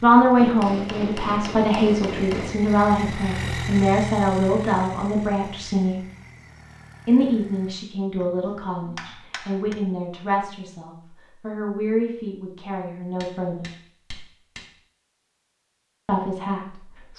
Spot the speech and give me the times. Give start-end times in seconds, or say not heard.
0.0-6.0, 7.0-13.7, 16.1-17.1.